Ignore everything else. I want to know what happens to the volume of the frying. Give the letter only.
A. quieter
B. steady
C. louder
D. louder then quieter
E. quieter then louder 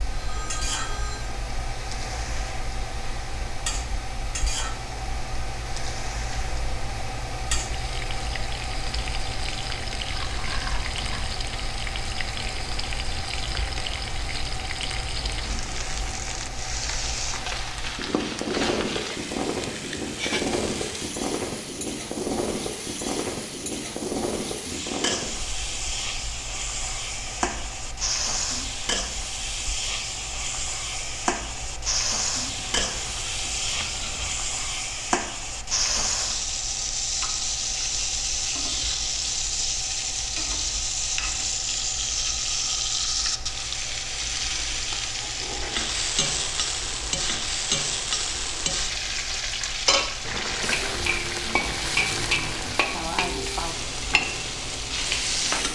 C.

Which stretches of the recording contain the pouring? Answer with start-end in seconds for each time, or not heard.
10.1-11.4, 32.8-34.4, 50.2-52.9.